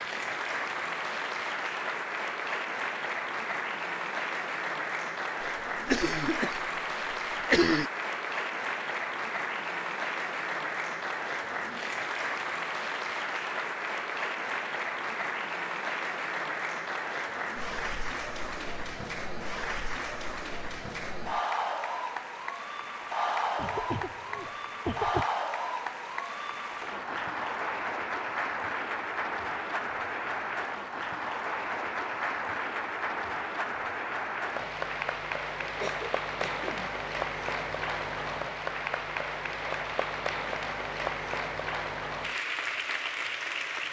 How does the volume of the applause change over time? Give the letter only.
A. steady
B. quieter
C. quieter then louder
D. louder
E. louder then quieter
A.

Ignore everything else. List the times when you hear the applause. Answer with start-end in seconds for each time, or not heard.
0.0-43.8.